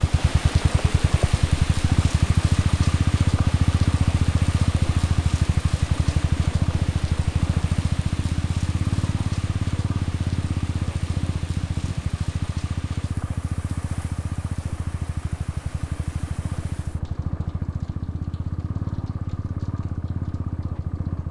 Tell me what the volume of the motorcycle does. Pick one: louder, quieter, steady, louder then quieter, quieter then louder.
quieter.